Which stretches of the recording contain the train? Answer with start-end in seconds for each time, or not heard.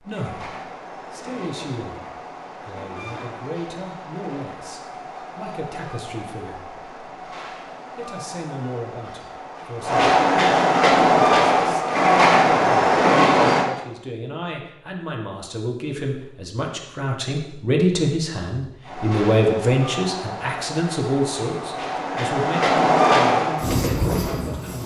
0.0-13.7, 18.8-24.8.